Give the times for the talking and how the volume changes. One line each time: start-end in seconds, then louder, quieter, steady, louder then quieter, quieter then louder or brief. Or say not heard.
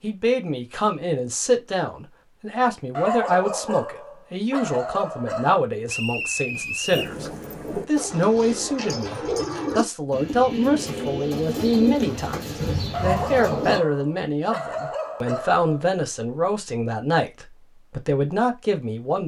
0.0-19.2 steady.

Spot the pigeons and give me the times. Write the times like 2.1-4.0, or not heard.
6.9-13.8.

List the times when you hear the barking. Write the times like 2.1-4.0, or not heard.
3.0-5.7, 12.9-15.9.